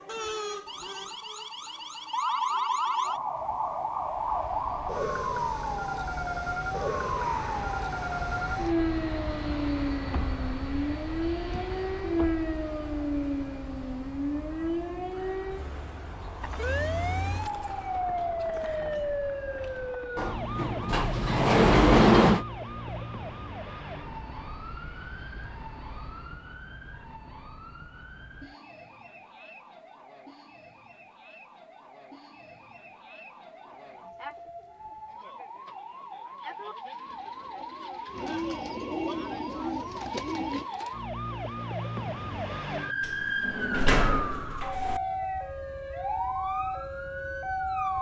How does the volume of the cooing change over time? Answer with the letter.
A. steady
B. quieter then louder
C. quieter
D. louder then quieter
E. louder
E.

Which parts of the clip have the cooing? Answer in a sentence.
The cooing can be heard from 33.6 to 40.6 s.